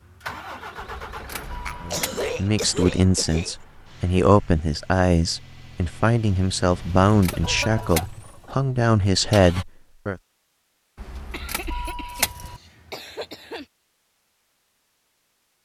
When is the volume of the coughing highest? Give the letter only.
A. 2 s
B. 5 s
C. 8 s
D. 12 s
A.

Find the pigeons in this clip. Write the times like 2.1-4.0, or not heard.
not heard.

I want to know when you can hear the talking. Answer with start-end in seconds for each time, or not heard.
1.8-10.2.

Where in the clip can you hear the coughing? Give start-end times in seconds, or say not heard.
1.6-3.5, 7.3-8.6, 11.3-13.7.